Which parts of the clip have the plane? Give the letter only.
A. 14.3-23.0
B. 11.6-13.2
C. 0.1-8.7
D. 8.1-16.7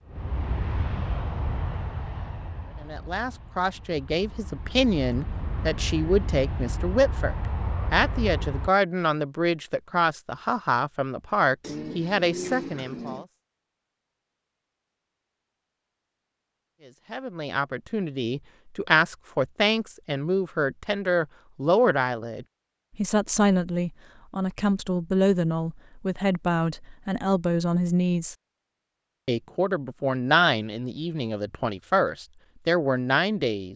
C.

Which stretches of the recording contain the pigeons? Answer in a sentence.
The pigeons can be heard from 11.6 to 13.2 s.